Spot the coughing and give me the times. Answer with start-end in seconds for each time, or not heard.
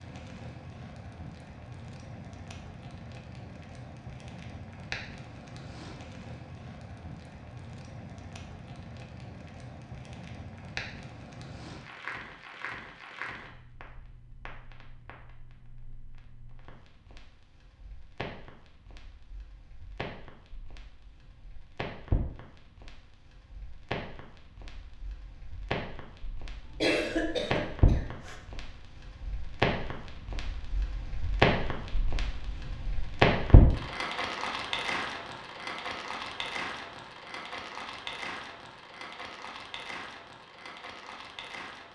26.6-28.4.